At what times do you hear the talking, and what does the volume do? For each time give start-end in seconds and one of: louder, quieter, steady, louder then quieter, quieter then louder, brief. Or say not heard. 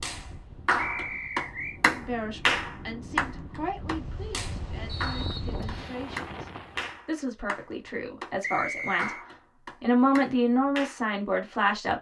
1.9-9.2 louder
9.8-11.9 brief.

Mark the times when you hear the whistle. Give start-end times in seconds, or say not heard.
0.8-1.8, 4.8-6.0, 8.4-9.2.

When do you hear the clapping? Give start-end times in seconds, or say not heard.
0.0-8.3, 8.9-11.0.